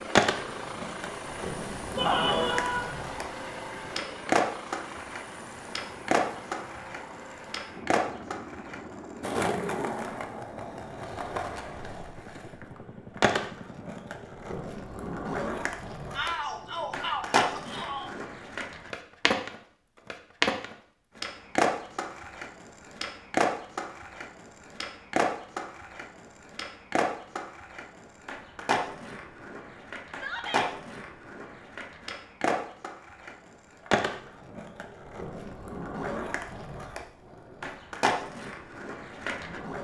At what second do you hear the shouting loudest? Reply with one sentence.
The loudest moment of the shouting is at 2 seconds.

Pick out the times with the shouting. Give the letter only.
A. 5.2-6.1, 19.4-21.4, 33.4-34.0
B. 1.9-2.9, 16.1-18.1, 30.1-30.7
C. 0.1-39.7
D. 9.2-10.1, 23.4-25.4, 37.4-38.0
B.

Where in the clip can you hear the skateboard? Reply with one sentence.
The skateboard can be heard from 0.1 to 39.7 s.